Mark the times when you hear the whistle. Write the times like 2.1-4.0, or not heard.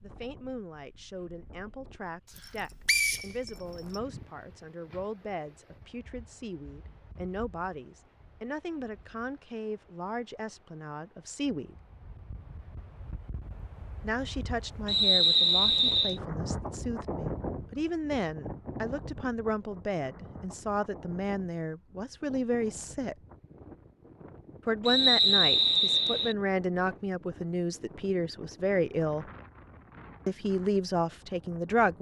2.9-4.0, 14.8-16.2, 24.9-26.4.